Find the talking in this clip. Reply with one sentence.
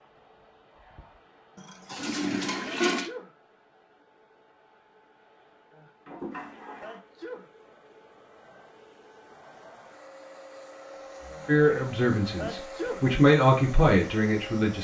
The talking can be heard from 11.4 to 14.7 s.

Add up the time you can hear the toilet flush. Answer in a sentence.
You can hear the toilet flush for 3 seconds altogether.